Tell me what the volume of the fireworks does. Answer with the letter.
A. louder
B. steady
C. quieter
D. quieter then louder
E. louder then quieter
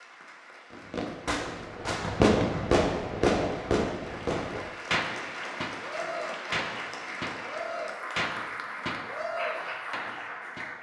C.